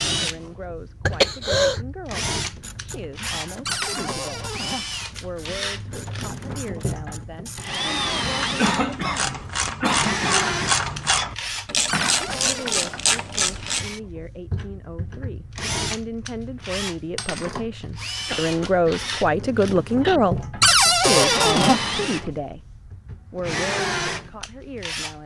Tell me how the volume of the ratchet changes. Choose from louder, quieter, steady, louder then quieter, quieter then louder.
louder.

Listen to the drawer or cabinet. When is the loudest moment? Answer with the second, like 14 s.
21 s.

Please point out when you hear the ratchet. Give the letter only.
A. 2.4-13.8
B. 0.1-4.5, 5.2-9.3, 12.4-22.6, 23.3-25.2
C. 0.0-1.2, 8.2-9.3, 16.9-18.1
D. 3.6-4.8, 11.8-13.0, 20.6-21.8
A.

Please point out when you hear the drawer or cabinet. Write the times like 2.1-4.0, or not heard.
3.6-4.8, 11.8-13.0, 20.6-21.8.